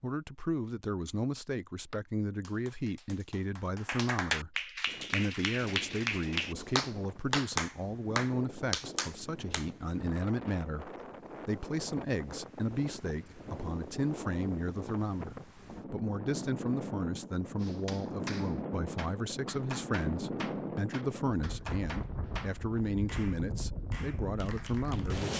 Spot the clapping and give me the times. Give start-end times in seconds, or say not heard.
1.9-9.7, 17.6-25.3.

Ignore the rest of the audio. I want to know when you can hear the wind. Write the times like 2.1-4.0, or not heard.
4.8-25.3.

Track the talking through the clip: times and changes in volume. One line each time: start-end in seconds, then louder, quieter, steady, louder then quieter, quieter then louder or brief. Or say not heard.
0.0-25.3 steady.